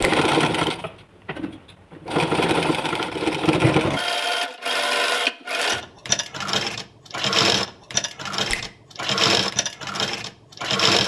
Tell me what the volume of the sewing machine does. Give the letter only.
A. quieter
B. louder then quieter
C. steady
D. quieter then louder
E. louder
C.